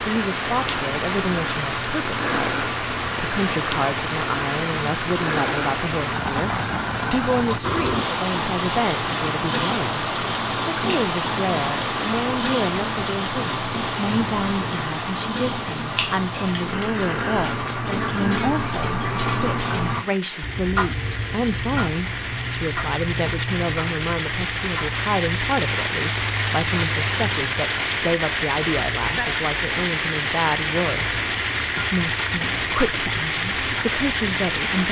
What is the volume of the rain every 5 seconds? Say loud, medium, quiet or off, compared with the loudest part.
loud, loud, loud, medium, medium, loud, loud.